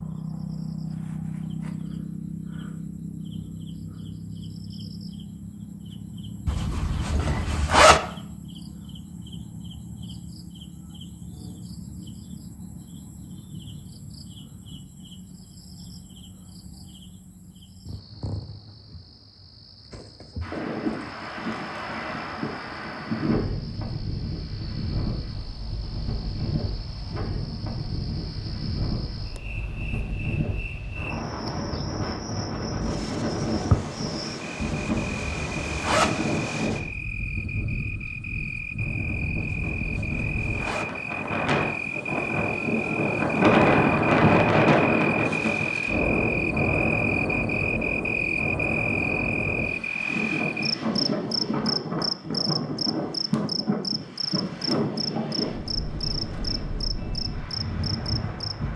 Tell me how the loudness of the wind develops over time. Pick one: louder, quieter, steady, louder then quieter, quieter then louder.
louder then quieter.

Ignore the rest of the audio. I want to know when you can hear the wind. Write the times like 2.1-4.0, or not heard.
20.4-58.7.